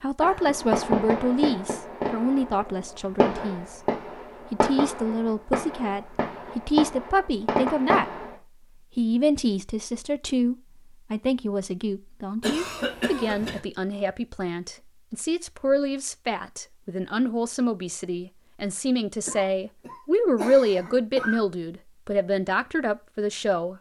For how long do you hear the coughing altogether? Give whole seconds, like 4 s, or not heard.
4 s.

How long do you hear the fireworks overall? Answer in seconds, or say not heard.
8 s.